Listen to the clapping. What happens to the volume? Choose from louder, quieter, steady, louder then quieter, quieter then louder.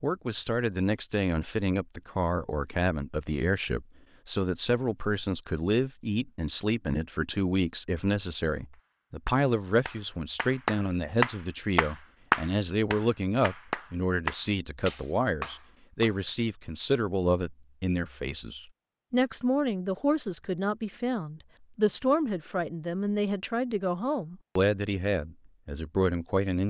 louder then quieter.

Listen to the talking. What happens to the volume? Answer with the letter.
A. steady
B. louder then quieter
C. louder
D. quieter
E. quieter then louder
A.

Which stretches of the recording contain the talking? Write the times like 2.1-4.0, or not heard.
0.0-26.6.